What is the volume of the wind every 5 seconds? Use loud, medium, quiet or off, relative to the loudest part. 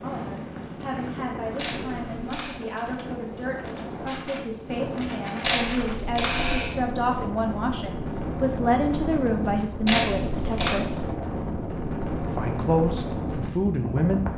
medium, loud, loud.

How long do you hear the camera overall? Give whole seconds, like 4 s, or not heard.
3 s.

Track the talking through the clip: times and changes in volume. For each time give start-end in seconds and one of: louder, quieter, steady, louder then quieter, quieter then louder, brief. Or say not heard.
0.0-11.2 louder
12.2-14.3 brief.